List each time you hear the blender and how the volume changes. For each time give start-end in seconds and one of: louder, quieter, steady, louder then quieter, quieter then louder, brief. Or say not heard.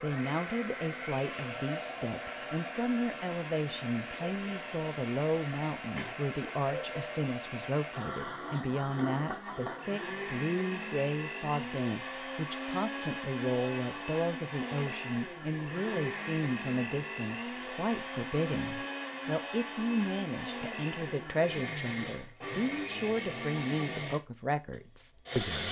0.0-25.6 steady.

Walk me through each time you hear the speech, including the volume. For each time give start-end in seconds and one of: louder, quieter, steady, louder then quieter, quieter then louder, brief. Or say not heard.
0.0-25.6 steady.